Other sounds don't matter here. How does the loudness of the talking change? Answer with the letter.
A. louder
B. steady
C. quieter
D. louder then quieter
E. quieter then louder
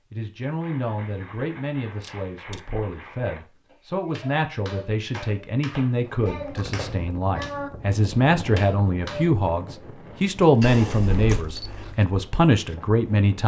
A.